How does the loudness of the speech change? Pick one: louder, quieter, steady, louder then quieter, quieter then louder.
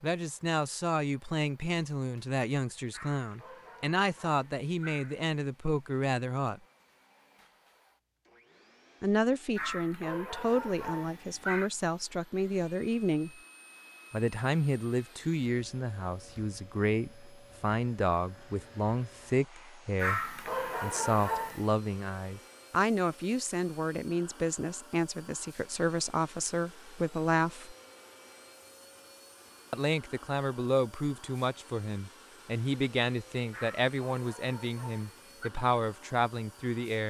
steady.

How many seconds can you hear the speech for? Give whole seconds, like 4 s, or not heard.
32 s.